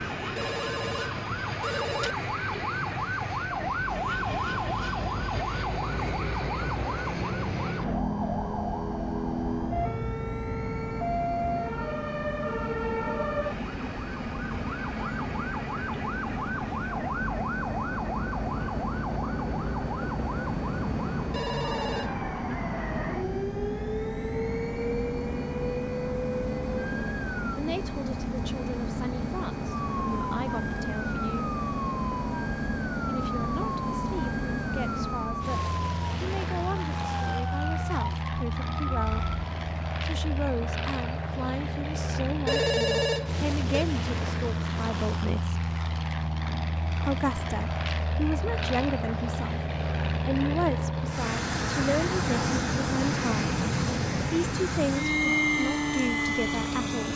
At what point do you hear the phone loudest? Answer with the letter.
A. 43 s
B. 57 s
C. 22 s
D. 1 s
A.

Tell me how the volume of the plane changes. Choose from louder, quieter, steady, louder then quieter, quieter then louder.
louder.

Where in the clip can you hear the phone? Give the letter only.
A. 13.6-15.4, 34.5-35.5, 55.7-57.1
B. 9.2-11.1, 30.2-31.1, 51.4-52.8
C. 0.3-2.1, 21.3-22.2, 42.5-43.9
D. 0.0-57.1
C.